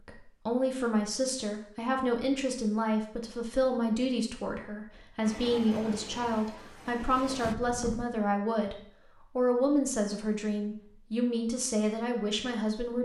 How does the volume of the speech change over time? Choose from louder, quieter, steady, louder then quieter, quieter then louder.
steady.